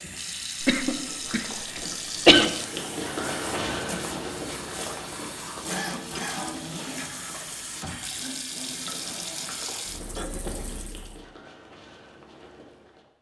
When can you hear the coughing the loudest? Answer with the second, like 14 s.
2 s.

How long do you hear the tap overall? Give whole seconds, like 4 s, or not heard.
11 s.